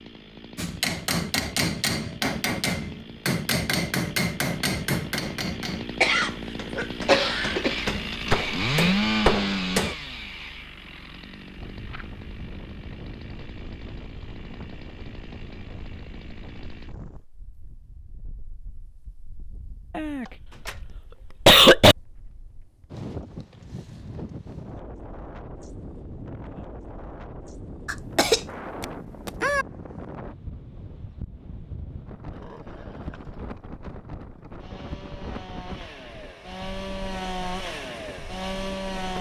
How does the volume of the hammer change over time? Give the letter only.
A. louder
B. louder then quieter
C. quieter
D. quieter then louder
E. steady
D.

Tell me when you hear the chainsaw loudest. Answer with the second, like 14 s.
9 s.